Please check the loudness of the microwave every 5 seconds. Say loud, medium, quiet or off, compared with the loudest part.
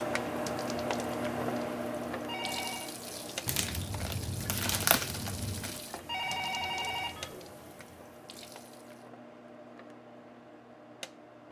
loud, quiet, quiet.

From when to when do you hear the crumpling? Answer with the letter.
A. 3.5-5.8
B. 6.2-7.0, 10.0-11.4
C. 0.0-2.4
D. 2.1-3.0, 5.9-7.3
A.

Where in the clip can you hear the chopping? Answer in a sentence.
You can't hear the chopping here.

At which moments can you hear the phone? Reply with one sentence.
The phone can be heard from 2.1 to 3.0 s and from 5.9 to 7.3 s.